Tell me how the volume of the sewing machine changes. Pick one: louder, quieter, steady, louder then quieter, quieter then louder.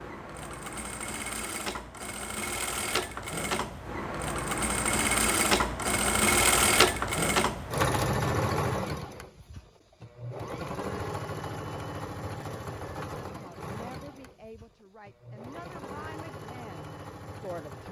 louder then quieter.